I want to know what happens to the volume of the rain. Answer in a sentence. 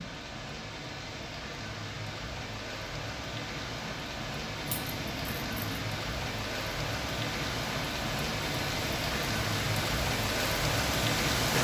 The loudness of the rain goes up.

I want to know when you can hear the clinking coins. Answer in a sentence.
The clinking coins can be heard from 4.7 to 5.9 s.